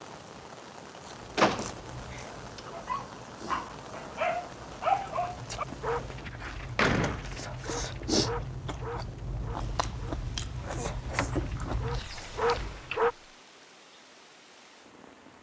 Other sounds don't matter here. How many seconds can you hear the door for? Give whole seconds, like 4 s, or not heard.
5 s.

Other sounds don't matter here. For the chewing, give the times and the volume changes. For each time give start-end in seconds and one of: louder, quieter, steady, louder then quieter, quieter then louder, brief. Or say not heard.
1.0-13.0 louder.